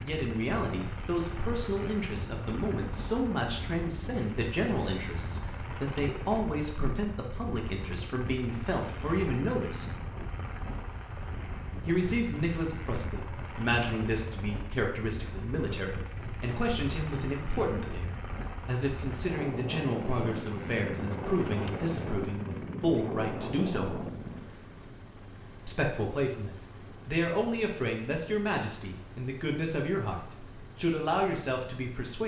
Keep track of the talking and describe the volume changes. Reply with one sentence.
The loudness of the talking stays about the same.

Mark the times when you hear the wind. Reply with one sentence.
The wind can be heard from 0.0 to 24.6 s.